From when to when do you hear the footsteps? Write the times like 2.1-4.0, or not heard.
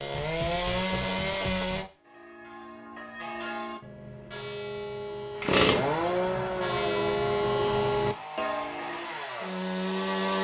not heard.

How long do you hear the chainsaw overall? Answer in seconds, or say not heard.
7 s.